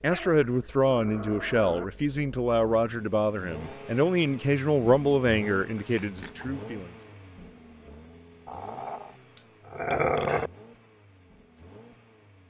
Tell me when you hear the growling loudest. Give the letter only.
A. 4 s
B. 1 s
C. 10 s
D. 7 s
C.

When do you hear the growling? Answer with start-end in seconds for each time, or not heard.
0.1-1.9, 5.8-6.5, 8.4-10.5.